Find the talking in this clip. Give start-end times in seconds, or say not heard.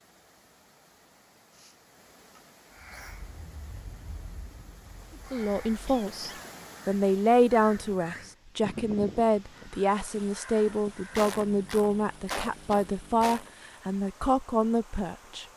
5.3-15.4.